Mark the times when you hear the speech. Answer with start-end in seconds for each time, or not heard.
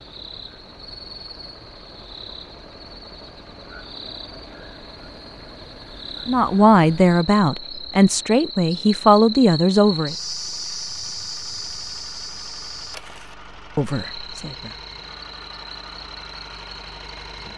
6.2-10.2, 13.8-14.7.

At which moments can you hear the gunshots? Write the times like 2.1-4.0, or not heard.
not heard.